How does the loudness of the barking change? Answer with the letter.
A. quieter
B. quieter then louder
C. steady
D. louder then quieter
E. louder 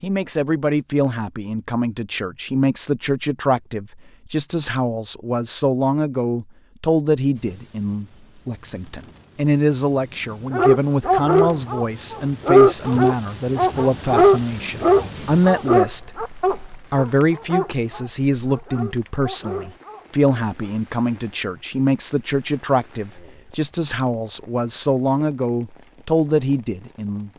A.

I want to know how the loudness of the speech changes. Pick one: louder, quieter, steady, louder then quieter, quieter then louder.
steady.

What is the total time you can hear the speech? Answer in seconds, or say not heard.
27 s.